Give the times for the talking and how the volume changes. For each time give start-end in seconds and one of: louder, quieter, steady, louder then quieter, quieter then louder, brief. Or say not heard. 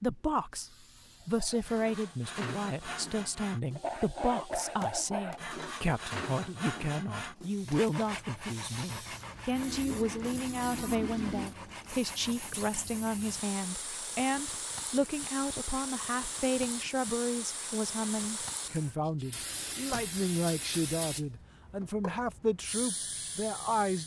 0.0-24.0 steady.